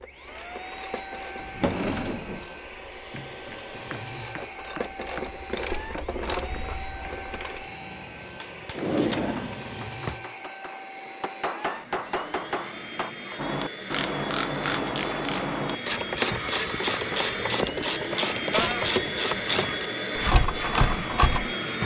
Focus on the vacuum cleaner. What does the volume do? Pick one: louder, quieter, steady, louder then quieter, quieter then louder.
louder.